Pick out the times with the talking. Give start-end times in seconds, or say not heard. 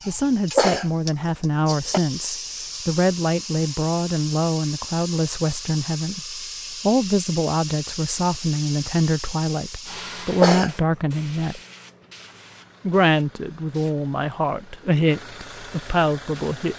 0.1-11.6, 12.8-16.7.